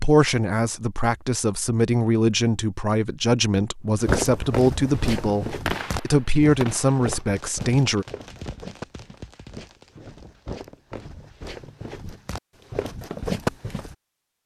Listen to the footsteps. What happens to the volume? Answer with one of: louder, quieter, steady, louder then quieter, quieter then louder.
quieter then louder.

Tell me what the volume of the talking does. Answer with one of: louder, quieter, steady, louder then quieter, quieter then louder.
steady.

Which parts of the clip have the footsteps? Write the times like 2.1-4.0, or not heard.
4.0-13.9.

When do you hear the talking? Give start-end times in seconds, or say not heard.
0.0-8.1.